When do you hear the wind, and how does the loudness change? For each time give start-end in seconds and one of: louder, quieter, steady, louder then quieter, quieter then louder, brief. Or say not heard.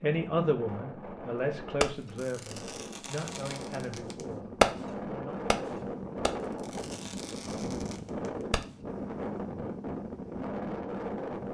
0.0-11.4 louder.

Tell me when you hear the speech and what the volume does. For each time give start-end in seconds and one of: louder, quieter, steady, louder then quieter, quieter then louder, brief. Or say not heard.
0.0-5.5 quieter.